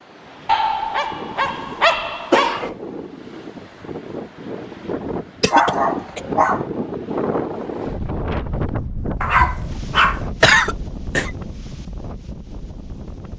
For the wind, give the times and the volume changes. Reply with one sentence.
You can hear the wind from 0.0 to 13.3 s, getting louder then quieter.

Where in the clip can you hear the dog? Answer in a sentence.
The dog can be heard from 0.5 to 2.6 s, from 5.5 to 6.7 s and from 9.2 to 10.2 s.